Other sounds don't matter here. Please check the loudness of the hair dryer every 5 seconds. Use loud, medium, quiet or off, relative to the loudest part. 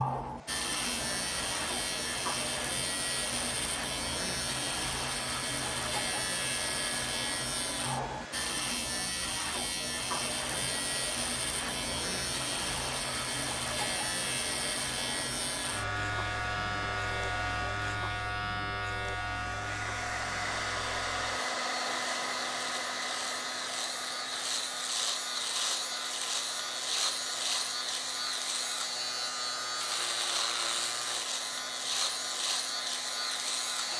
medium, medium, medium, medium, loud, medium, medium.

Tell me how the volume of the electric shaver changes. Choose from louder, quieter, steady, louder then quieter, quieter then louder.
steady.